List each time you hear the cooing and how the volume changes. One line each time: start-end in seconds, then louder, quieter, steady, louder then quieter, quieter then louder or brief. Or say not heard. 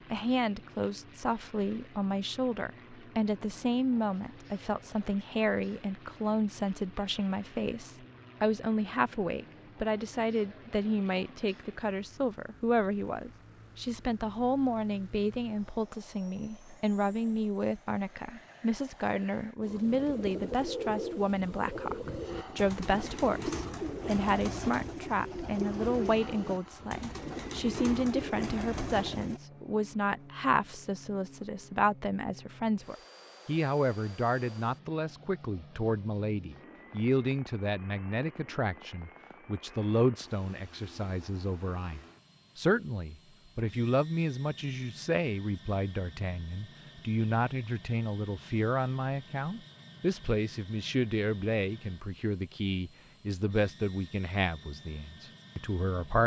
19.6-29.4 steady.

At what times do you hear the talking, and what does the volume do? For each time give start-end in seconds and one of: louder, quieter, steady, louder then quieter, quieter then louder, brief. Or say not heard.
0.1-56.2 steady.